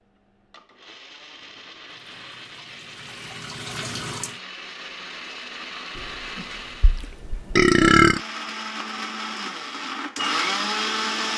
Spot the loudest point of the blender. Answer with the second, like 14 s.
11 s.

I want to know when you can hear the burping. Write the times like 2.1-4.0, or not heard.
6.0-8.2.